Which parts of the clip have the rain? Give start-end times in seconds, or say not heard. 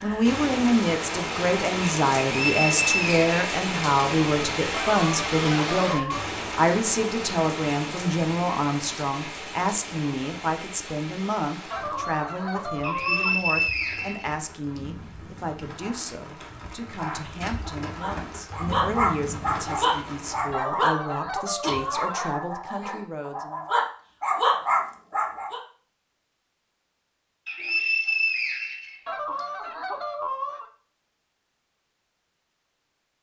0.0-20.6.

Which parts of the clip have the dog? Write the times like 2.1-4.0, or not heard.
15.8-25.6.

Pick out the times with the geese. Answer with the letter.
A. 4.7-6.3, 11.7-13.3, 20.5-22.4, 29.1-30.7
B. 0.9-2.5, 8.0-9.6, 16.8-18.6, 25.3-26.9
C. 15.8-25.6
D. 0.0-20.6
A.